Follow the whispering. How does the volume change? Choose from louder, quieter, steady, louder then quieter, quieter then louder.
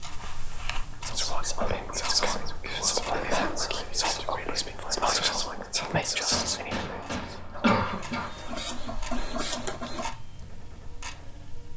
quieter.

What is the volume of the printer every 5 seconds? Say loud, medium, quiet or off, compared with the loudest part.
off, loud, quiet.